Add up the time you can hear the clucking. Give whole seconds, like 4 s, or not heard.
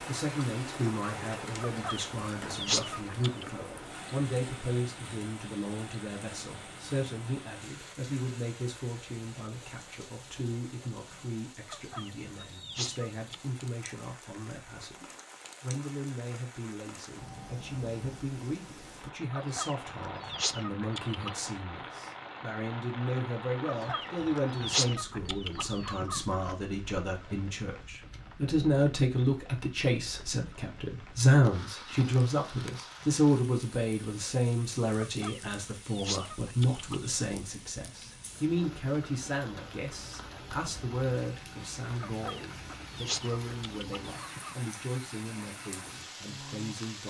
13 s.